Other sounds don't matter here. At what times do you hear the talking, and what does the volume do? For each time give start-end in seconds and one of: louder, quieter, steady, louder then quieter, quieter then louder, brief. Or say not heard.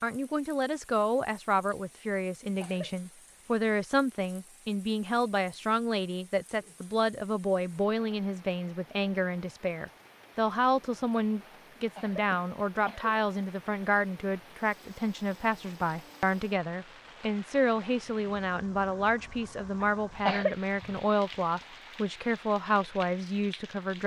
0.0-24.0 steady.